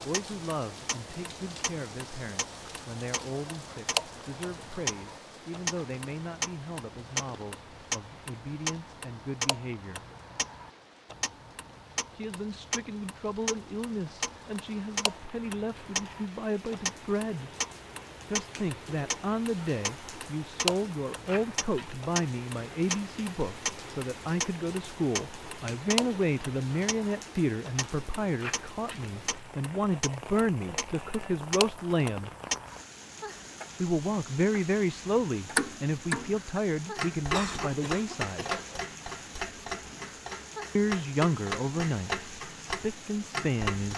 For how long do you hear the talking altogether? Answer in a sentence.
You can hear the talking for 37 seconds altogether.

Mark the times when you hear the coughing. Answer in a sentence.
The coughing can be heard from 37.3 to 38.8 s.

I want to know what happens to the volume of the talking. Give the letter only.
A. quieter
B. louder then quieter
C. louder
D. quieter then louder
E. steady
C.